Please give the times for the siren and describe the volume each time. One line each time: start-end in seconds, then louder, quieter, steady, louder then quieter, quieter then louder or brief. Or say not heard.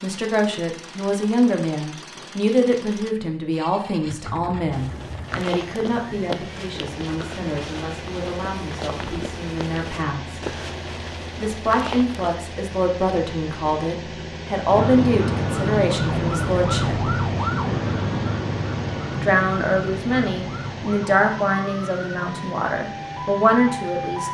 14.7-24.2 quieter.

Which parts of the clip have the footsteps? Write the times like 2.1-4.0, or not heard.
4.7-12.3.